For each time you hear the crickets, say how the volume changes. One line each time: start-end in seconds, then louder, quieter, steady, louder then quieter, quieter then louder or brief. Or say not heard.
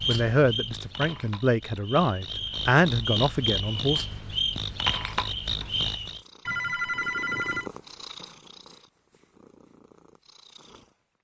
0.0-6.2 louder.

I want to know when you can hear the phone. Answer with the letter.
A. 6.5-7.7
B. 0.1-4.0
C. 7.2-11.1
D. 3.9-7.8
A.